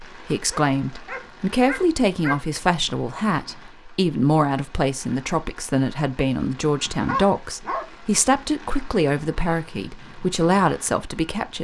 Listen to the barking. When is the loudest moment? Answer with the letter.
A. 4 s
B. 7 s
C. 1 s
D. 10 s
B.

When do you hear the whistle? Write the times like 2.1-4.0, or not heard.
not heard.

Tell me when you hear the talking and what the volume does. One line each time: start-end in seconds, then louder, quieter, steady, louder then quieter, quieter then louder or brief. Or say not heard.
0.0-11.6 steady.